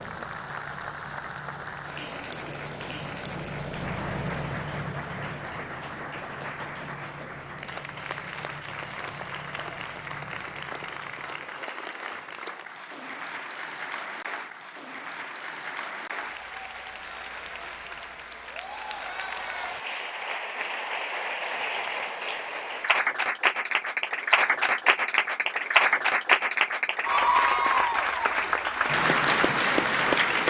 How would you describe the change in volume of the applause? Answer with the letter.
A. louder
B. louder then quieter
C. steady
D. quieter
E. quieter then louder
A.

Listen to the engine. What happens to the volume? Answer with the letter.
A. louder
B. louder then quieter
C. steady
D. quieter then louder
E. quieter
B.